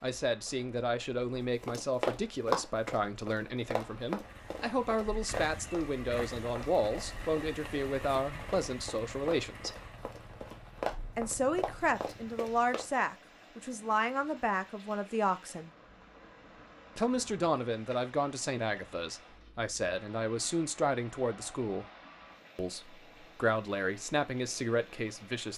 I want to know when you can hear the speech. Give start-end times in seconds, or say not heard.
0.0-9.8, 11.2-15.7, 16.9-21.9, 22.6-25.5.